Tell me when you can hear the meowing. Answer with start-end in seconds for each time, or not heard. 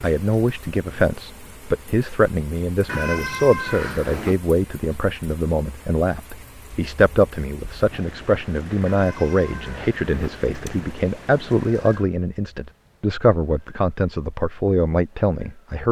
2.9-4.4, 8.8-10.8.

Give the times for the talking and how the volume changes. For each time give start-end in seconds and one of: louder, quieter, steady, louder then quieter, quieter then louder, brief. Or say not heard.
0.0-15.8 steady.